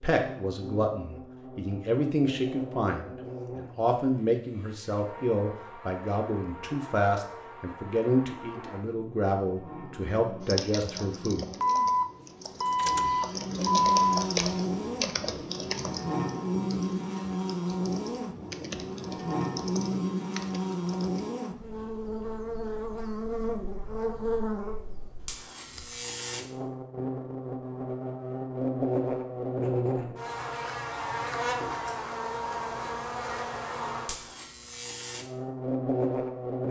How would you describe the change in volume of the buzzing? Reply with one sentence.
The loudness of the buzzing goes up.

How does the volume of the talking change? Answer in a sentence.
The volume of the talking stays about the same.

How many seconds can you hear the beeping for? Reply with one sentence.
The beeping can be heard for 3 seconds in total.